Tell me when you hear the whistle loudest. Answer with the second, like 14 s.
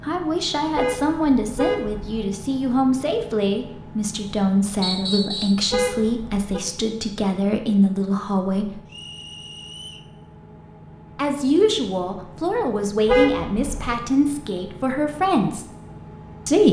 5 s.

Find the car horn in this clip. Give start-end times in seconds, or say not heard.
0.8-2.2, 5.7-6.6, 13.1-13.9.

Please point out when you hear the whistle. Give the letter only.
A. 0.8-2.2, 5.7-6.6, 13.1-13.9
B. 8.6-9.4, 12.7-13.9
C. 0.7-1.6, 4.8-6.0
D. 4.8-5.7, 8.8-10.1
D.